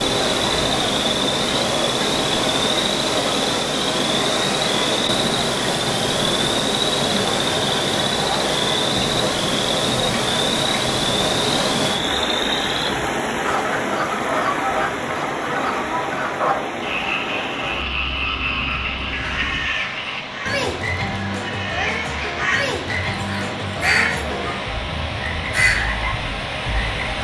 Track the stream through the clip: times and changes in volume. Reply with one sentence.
You can hear the stream from 0.0 to 27.1 s, getting quieter.